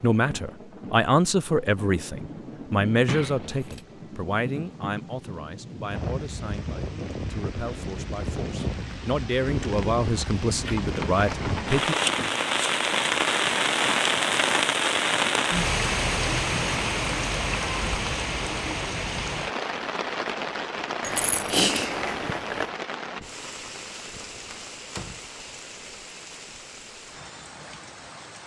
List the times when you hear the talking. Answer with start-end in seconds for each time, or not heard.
0.0-11.9.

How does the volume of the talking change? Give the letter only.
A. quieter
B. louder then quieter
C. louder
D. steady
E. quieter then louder
E.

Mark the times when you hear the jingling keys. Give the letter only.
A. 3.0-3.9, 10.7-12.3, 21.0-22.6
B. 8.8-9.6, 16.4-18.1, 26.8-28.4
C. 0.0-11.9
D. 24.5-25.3
A.